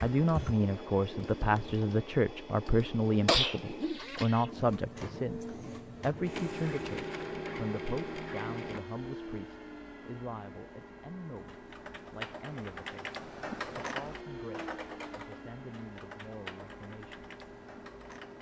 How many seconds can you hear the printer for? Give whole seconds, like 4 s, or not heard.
18 s.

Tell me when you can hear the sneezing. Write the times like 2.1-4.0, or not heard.
3.2-4.2.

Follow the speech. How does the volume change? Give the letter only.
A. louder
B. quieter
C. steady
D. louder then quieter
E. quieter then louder
B.